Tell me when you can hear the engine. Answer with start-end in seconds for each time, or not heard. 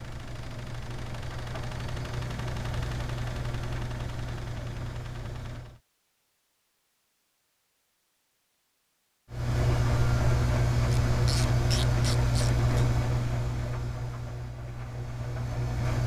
0.0-5.8, 9.3-16.0.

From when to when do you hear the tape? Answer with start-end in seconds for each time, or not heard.
not heard.